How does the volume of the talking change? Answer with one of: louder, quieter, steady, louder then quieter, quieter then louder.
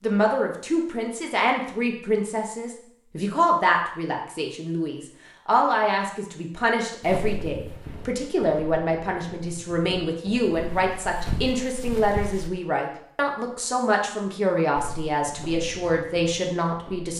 steady.